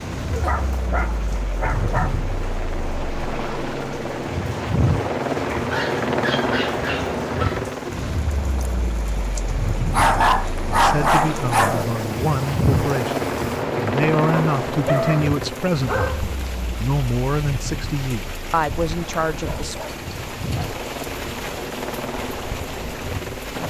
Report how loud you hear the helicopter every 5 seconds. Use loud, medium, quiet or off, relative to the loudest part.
loud, loud, loud, medium, medium.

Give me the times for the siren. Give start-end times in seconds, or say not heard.
not heard.